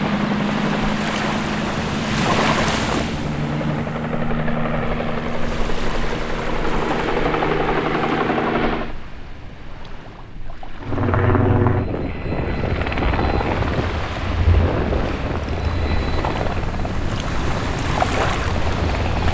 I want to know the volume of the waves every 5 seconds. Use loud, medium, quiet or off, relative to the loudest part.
loud, medium, medium, loud.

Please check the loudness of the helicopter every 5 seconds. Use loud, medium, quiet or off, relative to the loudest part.
loud, loud, loud, medium.